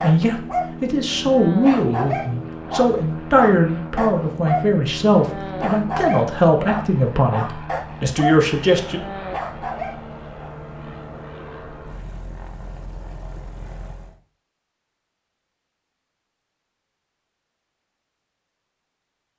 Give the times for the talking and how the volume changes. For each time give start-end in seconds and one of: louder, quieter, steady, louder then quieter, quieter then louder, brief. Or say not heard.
0.0-9.0 steady.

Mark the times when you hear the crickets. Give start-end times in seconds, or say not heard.
not heard.